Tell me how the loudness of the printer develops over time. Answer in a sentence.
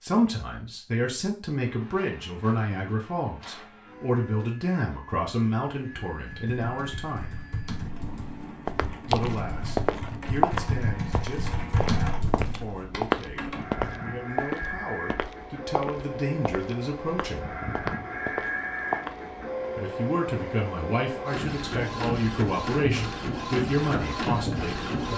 The loudness of the printer goes up.